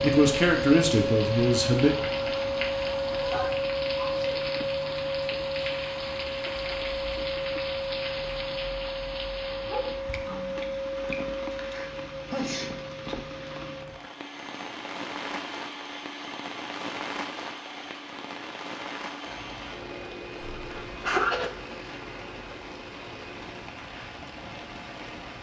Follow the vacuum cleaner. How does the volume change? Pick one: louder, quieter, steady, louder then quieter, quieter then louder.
quieter.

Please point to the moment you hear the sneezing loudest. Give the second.
21 s.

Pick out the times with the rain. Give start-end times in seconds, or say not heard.
0.0-25.3.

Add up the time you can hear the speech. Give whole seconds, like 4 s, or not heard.
2 s.